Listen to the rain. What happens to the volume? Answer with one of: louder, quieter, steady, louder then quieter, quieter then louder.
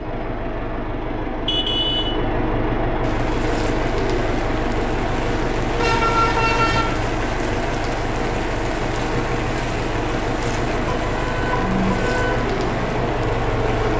steady.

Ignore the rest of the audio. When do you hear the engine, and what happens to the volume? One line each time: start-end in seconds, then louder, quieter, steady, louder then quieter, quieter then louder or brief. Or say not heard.
0.0-13.9 steady.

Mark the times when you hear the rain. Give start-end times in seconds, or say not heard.
3.0-13.9.